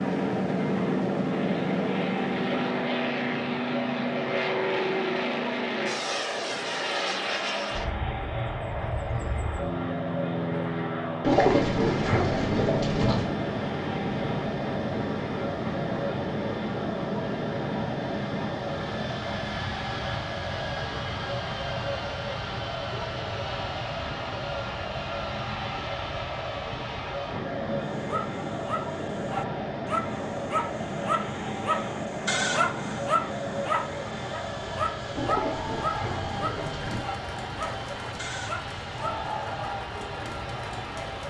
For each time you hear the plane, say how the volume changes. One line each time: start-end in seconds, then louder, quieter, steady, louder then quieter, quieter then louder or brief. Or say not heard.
0.0-41.2 quieter.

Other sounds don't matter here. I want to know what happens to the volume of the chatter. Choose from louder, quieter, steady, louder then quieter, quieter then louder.
steady.